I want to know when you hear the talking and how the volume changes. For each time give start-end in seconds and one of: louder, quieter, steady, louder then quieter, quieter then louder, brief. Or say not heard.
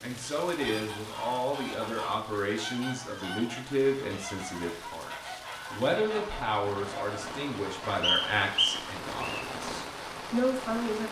0.0-11.0 steady.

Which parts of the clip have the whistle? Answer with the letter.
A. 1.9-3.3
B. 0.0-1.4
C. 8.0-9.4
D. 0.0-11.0
C.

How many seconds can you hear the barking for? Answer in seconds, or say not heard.
not heard.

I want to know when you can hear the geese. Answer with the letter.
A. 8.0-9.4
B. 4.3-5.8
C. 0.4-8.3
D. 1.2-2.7
C.